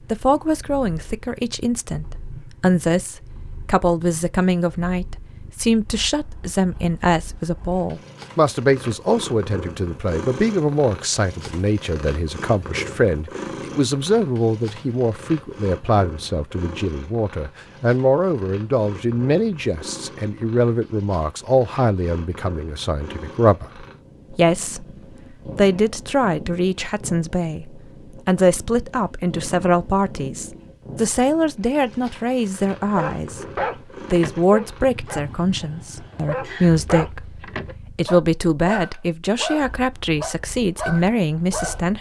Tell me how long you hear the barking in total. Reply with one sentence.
The barking can be heard for 9 seconds in total.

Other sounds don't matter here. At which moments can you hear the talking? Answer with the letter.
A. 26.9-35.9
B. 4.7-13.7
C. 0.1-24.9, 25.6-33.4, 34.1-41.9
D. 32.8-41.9
C.